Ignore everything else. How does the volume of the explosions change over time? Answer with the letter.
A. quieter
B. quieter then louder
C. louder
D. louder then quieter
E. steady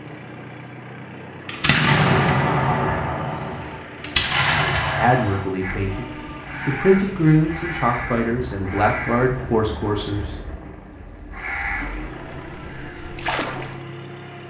B.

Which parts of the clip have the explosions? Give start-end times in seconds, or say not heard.
1.4-5.5.